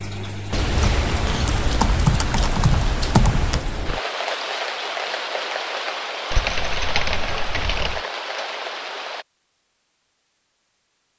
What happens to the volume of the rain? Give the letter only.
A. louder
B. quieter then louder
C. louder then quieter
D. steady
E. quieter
D.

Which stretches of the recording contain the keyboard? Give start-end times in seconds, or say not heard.
0.8-3.6, 6.3-8.0.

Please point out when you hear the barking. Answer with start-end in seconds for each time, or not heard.
not heard.